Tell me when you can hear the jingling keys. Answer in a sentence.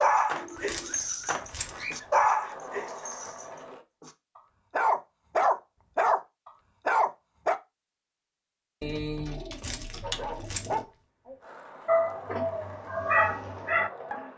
You can hear the jingling keys from 0.6 to 1.9 s and from 9.5 to 10.8 s.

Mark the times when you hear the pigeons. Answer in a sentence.
The pigeons can be heard from 0.3 to 2.0 s and from 8.8 to 10.8 s.